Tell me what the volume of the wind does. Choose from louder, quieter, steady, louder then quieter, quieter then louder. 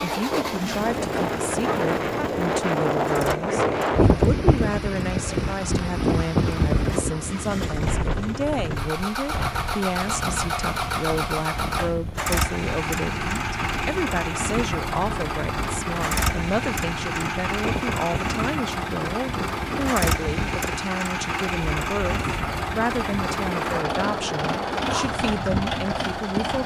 quieter.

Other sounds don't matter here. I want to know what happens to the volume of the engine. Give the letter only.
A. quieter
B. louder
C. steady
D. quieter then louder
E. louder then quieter
B.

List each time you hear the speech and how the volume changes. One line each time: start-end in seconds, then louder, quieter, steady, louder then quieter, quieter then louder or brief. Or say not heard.
0.0-26.6 steady.